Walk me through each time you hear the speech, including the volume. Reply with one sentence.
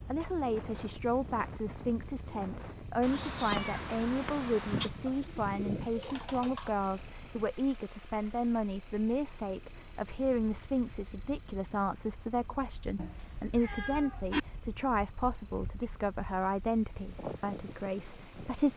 The speech can be heard from 0.0 to 18.7 s, at a steady volume.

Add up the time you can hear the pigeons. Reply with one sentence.
The pigeons can be heard for 2 seconds in total.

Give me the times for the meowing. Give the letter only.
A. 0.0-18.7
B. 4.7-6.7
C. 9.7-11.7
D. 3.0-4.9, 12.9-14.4
D.